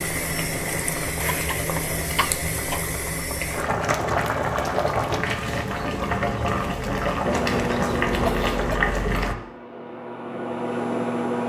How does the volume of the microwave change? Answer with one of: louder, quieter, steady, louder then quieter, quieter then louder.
quieter then louder.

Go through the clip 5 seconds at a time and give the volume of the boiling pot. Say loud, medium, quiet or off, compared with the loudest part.
loud, loud, off.